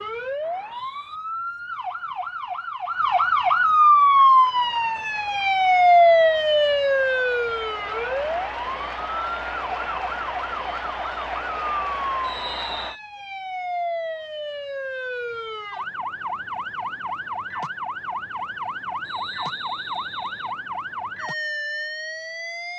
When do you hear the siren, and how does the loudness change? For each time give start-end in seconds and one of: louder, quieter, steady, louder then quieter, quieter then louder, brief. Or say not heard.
0.0-22.7 quieter.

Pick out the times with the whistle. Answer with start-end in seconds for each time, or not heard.
0.4-1.2, 12.2-13.0, 19.0-20.6.